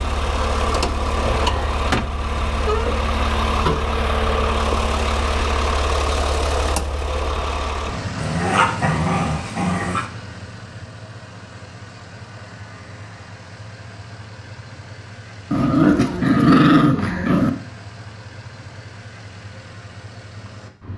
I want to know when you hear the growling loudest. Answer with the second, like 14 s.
17 s.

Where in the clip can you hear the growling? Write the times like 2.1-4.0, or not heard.
1.2-1.9, 8.2-10.1, 15.5-17.5.